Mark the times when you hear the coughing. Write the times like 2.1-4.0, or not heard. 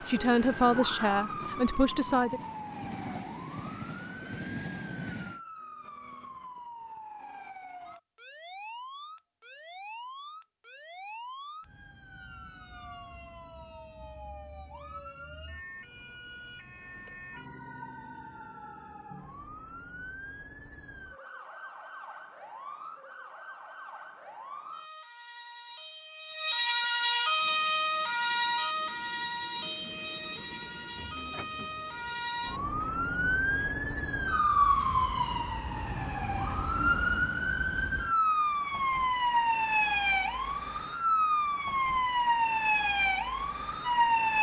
not heard.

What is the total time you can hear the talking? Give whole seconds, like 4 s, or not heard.
2 s.